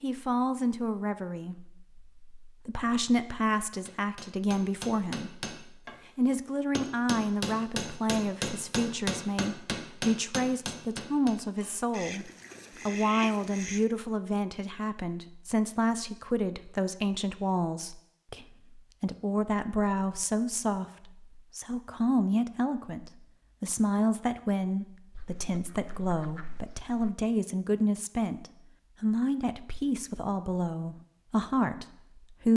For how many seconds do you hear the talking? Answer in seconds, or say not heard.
32 s.